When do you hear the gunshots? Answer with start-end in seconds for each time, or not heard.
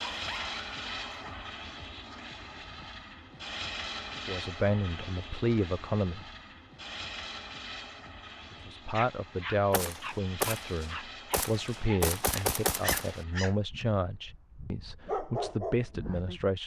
9.7-13.2.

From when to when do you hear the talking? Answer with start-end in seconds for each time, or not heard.
4.2-6.2, 8.5-16.6.